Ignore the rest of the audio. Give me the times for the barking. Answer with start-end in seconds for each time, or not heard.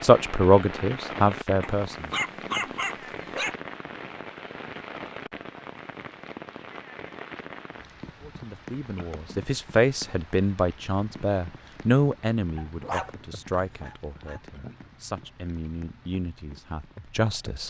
1.6-3.5, 12.6-14.4.